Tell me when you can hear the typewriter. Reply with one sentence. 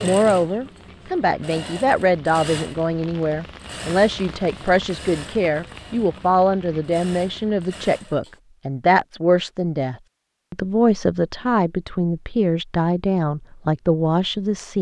The typewriter can't be heard in this clip.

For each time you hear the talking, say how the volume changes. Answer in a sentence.
The talking can be heard from 0.0 to 14.7 s, at a steady volume.